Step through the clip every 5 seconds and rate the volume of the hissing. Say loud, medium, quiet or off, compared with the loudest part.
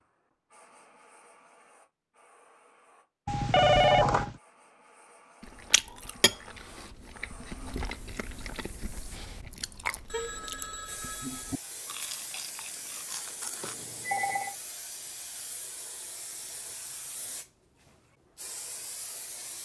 quiet, medium, loud, loud.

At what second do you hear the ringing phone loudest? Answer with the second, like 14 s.
4 s.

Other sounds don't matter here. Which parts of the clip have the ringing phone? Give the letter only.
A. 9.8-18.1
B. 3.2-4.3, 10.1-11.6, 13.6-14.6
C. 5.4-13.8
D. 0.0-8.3
B.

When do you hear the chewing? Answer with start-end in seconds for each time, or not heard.
5.4-13.8.